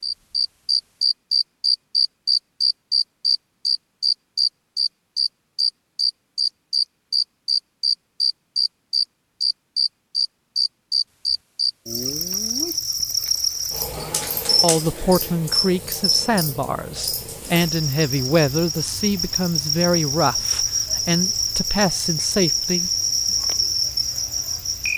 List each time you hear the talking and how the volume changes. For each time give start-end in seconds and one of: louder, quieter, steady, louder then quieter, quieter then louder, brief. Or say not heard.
14.6-22.9 steady.